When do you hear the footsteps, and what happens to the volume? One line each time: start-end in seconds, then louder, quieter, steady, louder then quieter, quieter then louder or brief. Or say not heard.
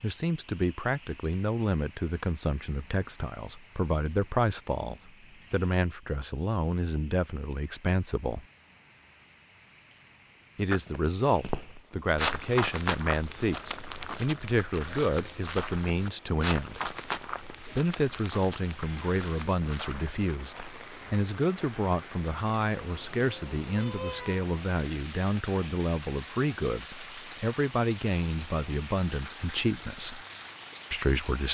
10.7-21.2 quieter.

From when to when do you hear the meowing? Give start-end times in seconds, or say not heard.
23.6-24.4.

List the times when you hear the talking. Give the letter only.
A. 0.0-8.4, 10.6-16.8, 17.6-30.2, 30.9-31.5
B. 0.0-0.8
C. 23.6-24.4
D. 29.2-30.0
A.